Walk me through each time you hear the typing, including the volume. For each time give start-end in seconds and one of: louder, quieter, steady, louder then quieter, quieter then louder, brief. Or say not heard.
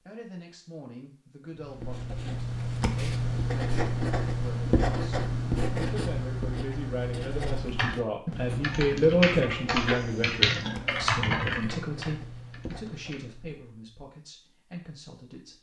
7.7-13.3 louder then quieter.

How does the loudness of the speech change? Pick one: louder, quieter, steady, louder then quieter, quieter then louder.
louder then quieter.